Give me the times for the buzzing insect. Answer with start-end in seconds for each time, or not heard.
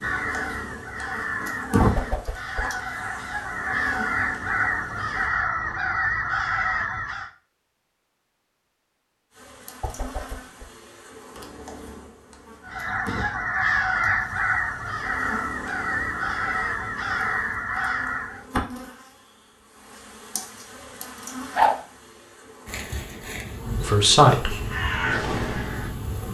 0.0-5.3, 9.3-26.2.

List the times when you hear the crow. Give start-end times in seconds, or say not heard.
0.0-7.3, 12.6-18.4, 24.5-26.2.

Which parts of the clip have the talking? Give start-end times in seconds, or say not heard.
23.8-24.6.